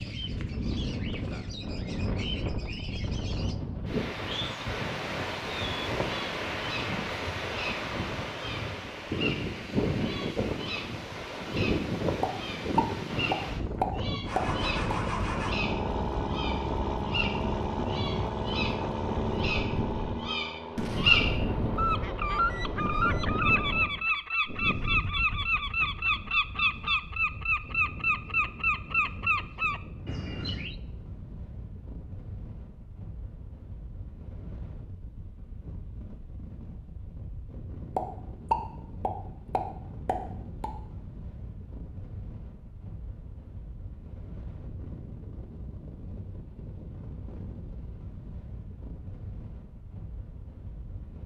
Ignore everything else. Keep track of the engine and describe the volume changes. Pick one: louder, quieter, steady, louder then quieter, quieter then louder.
quieter.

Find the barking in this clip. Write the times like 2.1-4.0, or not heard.
not heard.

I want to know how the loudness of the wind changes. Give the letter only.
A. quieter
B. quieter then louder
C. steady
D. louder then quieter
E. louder
A.